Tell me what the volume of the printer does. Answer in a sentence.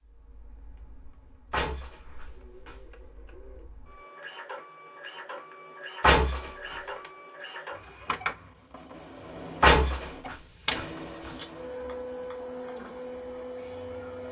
The loudness of the printer goes up.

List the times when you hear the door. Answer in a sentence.
You can hear the door from 1.5 to 2.8 s, from 6.0 to 6.8 s and from 9.6 to 11.4 s.